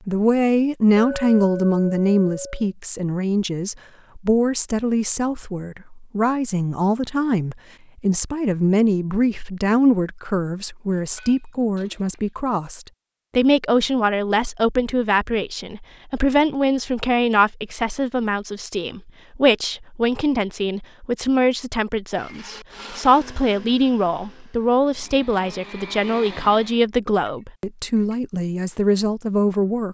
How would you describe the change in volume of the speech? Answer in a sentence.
The volume of the speech stays about the same.